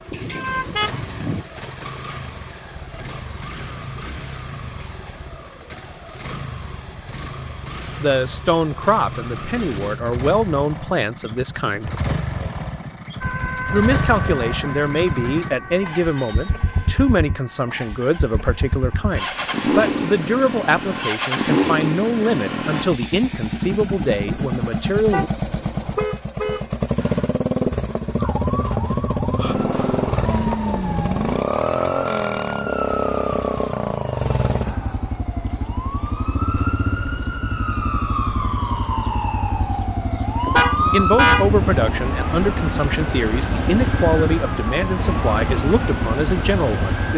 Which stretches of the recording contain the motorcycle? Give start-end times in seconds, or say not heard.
0.0-47.1.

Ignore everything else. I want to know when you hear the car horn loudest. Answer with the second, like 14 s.
41 s.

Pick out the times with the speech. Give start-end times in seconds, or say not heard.
8.0-11.9, 13.7-25.3, 40.9-47.1.